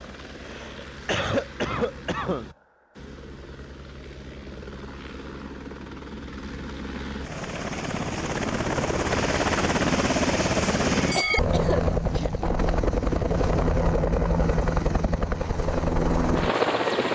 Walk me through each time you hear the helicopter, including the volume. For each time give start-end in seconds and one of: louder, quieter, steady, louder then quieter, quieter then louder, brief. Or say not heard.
0.0-17.1 louder.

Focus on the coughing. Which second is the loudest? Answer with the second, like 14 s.
1 s.